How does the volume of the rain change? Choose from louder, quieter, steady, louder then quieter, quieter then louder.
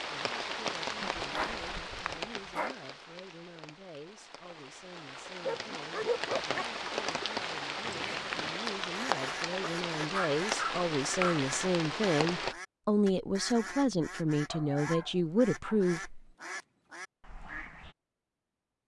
quieter then louder.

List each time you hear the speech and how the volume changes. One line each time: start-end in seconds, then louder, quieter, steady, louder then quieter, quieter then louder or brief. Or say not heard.
0.1-16.2 louder.